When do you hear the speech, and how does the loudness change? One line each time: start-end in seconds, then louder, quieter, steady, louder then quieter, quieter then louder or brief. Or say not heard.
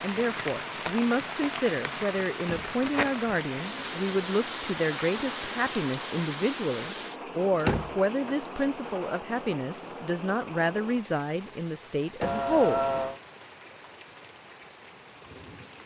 0.0-12.8 steady.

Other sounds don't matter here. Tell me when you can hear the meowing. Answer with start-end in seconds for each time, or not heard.
12.2-13.2.